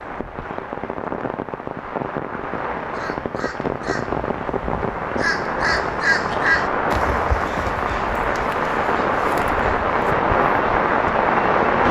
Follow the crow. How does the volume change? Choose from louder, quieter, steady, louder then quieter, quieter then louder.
louder then quieter.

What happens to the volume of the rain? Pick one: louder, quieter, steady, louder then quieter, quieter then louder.
louder.